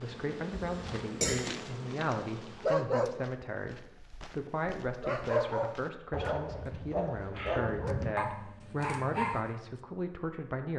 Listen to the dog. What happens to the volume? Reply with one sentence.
The volume of the dog stays about the same.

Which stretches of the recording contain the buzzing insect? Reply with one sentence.
The buzzing insect can be heard from 0.0 to 2.8 s.